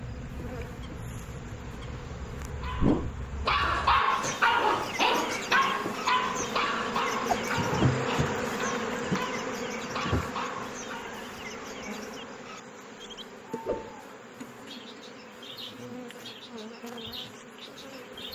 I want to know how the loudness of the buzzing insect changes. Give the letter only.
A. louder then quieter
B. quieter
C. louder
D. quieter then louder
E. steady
A.